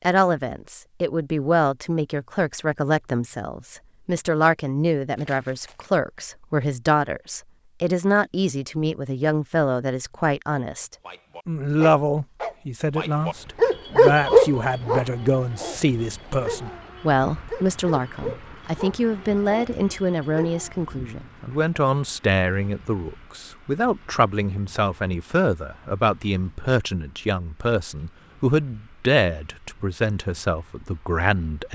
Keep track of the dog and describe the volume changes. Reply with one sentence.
The volume of the dog goes up, then down.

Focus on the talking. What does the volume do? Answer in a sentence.
The loudness of the talking stays about the same.